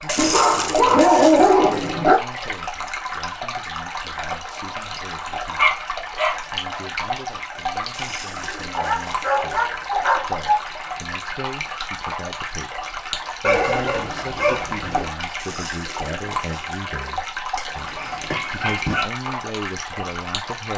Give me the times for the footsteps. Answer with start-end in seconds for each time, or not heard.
not heard.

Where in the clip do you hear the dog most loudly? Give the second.
1 s.